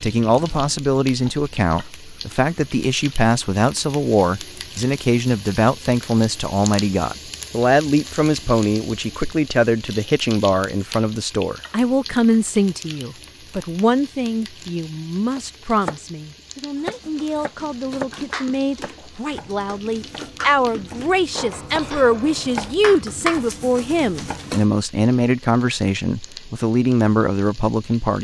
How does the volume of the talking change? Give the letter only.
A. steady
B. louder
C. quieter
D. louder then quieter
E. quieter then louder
A.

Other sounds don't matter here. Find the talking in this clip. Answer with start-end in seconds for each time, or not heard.
0.0-28.1.